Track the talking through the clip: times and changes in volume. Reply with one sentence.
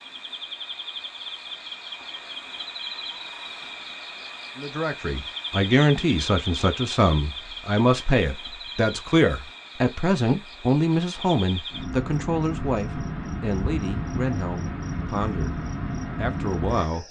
You can hear the talking from 4.5 to 17.0 s, getting quieter.